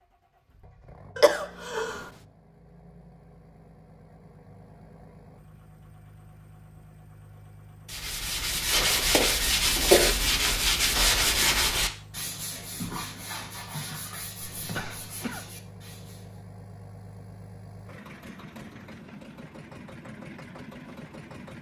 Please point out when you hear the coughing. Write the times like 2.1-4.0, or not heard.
1.1-2.1, 9.1-10.2, 14.4-15.6.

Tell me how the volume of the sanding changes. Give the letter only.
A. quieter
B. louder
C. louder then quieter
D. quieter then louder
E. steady
A.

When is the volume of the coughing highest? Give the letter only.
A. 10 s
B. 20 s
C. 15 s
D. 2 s
A.